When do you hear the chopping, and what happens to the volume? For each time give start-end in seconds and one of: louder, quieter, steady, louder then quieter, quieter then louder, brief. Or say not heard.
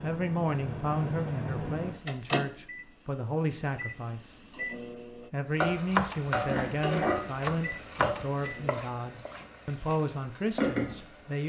5.8-10.8 louder then quieter.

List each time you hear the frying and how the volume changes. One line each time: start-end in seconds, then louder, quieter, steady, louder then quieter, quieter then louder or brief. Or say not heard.
5.5-11.4 quieter then louder.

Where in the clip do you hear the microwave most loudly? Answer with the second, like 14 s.
2 s.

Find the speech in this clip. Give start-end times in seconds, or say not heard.
0.0-4.4, 5.3-11.4.